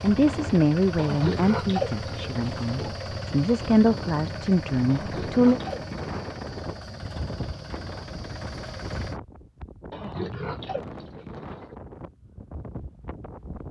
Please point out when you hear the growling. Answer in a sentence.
The growling can't be heard in this clip.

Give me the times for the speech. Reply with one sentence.
You can hear the speech from 0.0 to 5.6 s.